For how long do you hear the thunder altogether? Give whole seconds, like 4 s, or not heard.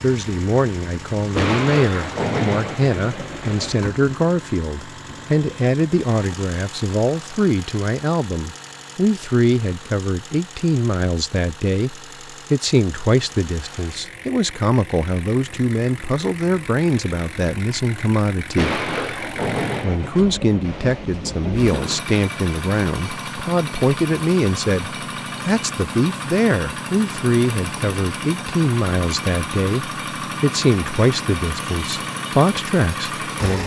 6 s.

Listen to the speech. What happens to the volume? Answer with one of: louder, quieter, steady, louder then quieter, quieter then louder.
steady.